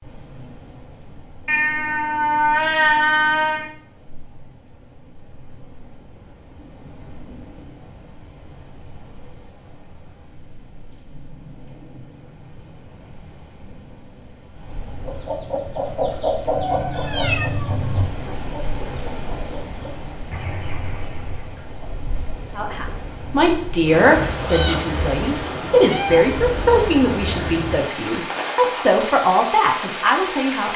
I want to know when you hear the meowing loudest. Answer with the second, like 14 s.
3 s.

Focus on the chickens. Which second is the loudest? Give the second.
16 s.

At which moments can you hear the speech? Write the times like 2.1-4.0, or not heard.
22.6-30.7.